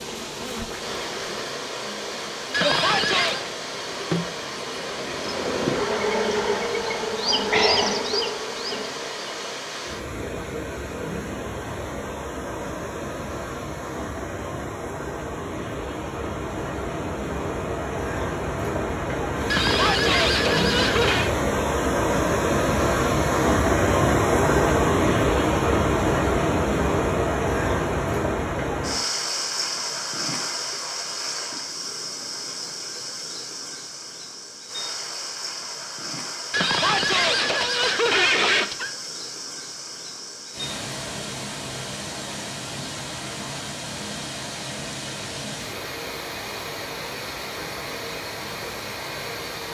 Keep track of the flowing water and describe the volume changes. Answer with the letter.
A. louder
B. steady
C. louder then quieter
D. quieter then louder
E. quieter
C.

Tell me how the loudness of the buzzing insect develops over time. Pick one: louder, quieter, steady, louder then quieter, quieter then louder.
louder.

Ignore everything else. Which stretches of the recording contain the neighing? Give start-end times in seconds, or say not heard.
2.5-3.5, 19.5-21.3, 36.5-38.9.